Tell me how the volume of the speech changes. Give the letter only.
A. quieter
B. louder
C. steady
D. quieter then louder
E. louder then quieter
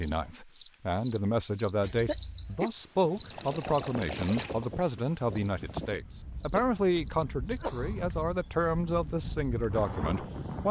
C.